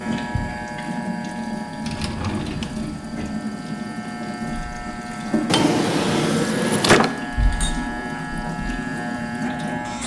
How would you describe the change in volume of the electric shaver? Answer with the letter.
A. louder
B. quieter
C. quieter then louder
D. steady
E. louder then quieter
C.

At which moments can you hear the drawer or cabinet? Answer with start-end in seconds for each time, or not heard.
1.8-3.4, 5.5-7.2.